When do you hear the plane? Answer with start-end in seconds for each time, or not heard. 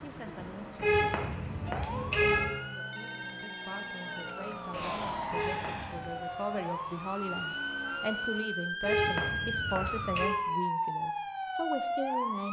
0.0-8.4.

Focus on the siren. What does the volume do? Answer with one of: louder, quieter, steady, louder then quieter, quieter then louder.
louder.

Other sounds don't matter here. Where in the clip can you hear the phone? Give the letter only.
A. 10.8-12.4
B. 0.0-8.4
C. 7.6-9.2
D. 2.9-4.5
D.